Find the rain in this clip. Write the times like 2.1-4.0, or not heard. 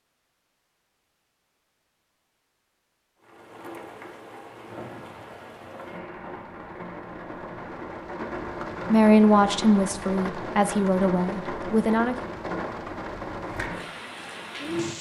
3.2-14.9.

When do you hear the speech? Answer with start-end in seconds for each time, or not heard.
8.8-12.2.